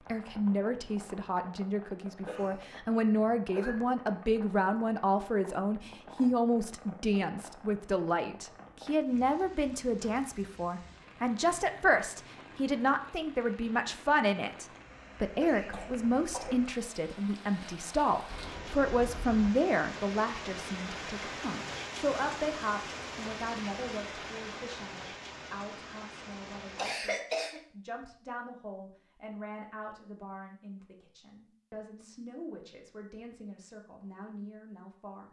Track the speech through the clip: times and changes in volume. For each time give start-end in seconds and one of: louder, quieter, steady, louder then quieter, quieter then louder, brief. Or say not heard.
0.1-35.2 quieter.